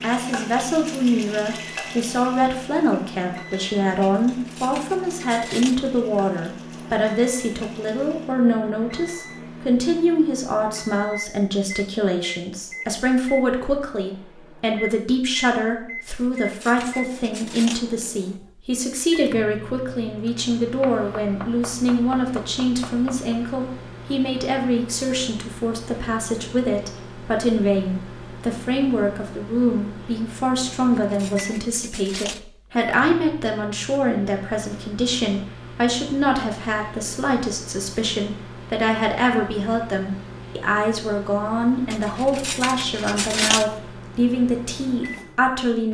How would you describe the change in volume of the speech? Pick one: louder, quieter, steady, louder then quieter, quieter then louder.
steady.